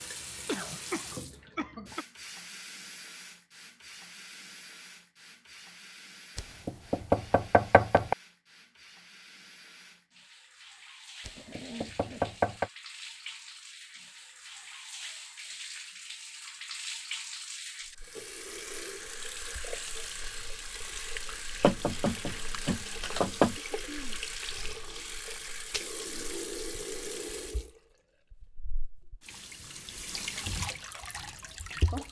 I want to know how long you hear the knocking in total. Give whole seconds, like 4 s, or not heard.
5 s.